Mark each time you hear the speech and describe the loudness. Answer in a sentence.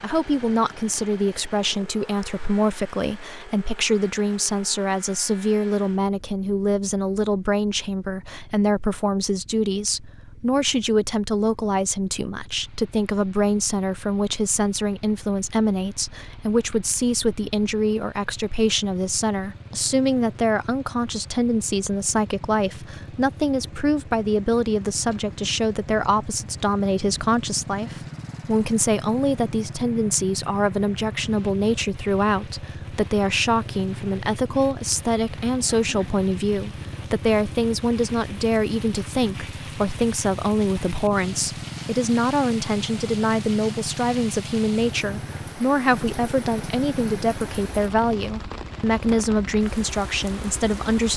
You can hear the speech from 0.0 to 51.1 s, at a steady volume.